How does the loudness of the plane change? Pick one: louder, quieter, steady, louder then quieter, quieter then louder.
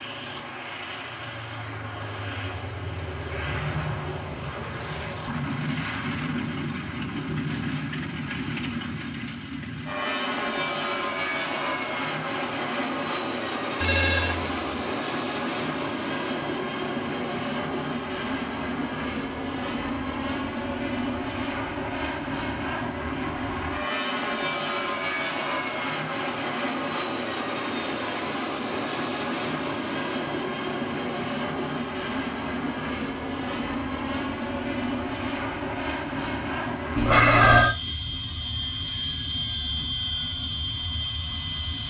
steady.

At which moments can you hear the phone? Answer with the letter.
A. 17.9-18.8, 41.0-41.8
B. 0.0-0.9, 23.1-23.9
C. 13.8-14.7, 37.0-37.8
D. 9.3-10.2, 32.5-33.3
C.